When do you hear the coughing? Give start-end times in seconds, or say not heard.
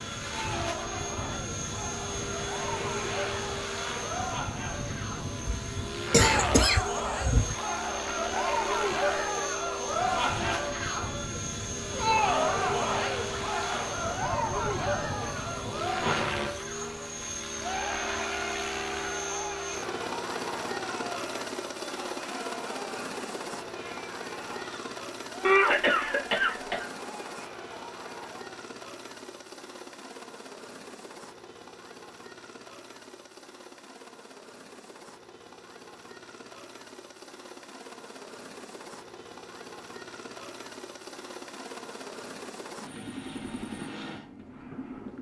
5.5-7.5, 25.4-26.9.